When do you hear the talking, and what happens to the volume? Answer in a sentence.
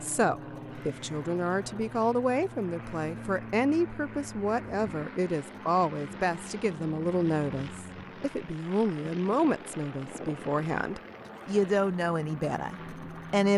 The talking can be heard from 0.0 to 13.5 s, at a steady volume.